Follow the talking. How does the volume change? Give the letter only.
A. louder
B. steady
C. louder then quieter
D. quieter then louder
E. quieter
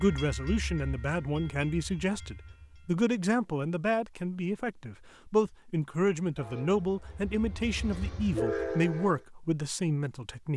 B.